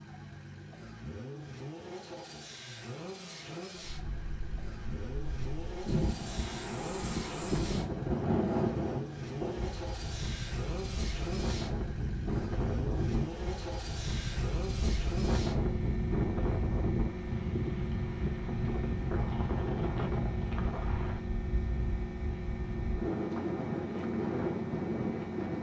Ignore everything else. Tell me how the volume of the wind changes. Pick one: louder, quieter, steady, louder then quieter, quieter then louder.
steady.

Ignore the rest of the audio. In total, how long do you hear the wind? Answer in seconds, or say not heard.
22 s.